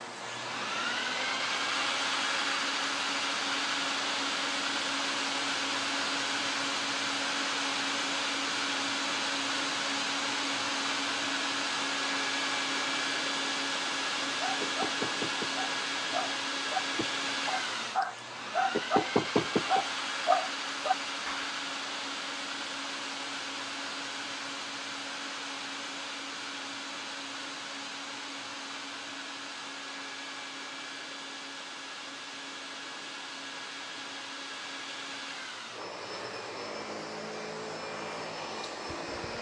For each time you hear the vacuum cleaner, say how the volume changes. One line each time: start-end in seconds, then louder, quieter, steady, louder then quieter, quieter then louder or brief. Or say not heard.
0.0-39.3 quieter.